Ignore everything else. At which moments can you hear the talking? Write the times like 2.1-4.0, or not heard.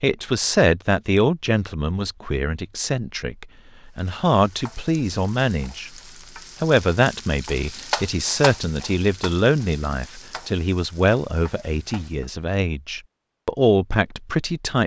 0.0-5.9, 6.6-14.8.